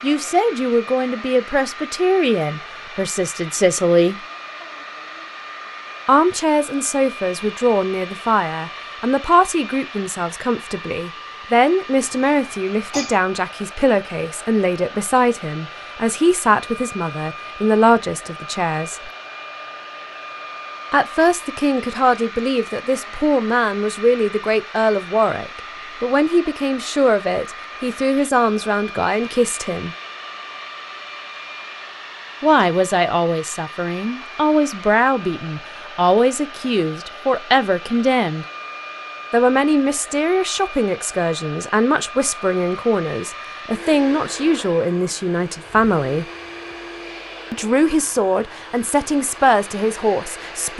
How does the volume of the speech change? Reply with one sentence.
The volume of the speech stays about the same.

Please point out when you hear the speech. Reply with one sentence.
You can hear the speech from 0.0 to 4.2 s, from 6.0 to 19.1 s, from 20.9 to 29.9 s, from 32.4 to 38.5 s, from 39.3 to 46.2 s and from 47.5 to 50.7 s.